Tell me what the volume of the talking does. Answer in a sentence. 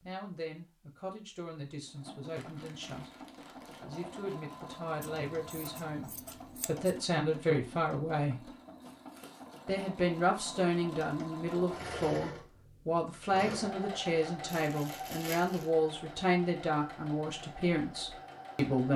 The loudness of the talking goes up.